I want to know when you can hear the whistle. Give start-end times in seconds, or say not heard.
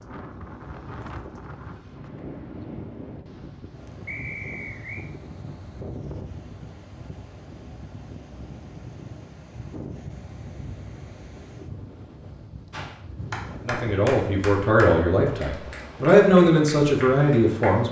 4.0-5.0.